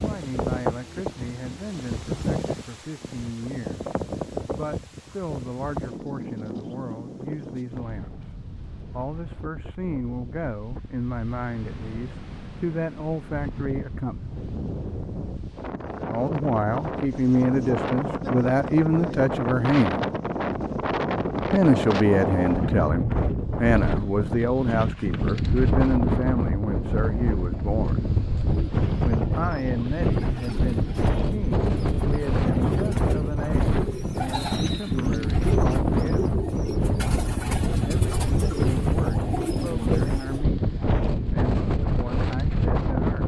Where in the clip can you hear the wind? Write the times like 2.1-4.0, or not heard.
0.0-43.2.